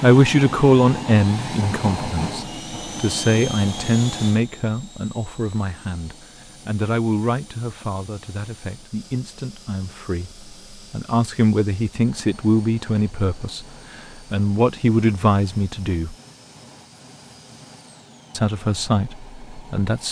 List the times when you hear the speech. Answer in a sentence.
The speech can be heard from 0.0 to 16.1 s and from 18.3 to 20.0 s.